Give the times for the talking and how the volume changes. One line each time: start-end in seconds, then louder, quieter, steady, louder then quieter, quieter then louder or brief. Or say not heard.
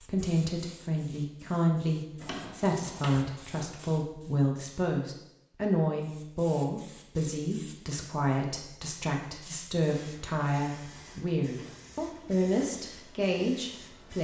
0.0-14.2 steady.